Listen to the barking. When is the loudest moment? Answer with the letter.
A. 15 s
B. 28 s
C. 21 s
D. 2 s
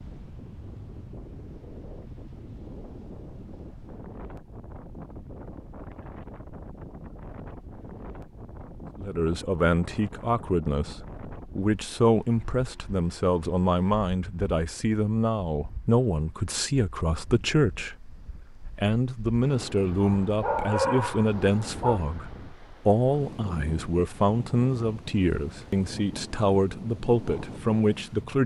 C.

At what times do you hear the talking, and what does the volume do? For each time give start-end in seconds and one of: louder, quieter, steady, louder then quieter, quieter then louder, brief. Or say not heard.
8.9-28.4 steady.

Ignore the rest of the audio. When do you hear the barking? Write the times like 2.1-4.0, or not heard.
20.0-22.0.